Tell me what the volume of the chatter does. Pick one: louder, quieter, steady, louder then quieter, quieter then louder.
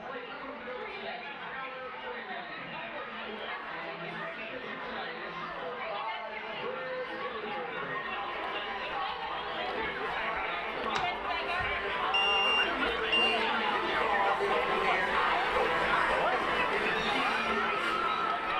louder.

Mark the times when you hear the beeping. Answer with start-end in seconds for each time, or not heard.
10.9-13.4.